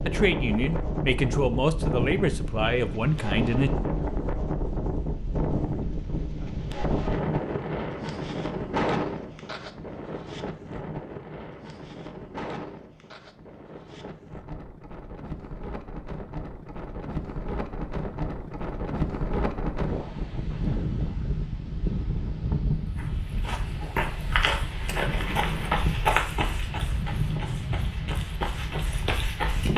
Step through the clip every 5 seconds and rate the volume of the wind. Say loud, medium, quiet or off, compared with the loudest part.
loud, loud, medium, loud, loud, loud.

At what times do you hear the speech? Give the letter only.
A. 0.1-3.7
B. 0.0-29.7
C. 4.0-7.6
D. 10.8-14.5
A.